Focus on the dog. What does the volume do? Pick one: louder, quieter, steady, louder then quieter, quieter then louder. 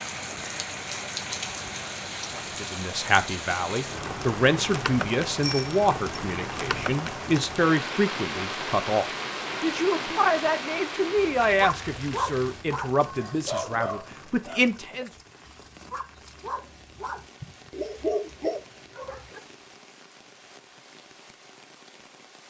quieter then louder.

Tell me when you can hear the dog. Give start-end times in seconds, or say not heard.
11.4-19.4.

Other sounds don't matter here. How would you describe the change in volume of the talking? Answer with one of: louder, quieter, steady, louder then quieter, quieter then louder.
steady.